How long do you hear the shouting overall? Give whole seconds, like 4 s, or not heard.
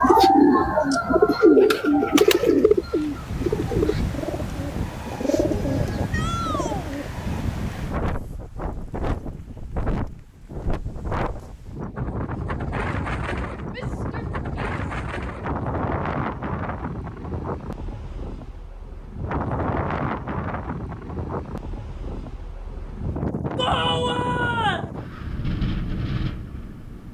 3 s.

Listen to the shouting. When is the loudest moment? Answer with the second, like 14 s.
24 s.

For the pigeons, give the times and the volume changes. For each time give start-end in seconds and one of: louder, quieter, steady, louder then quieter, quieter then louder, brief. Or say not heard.
0.0-7.5 quieter.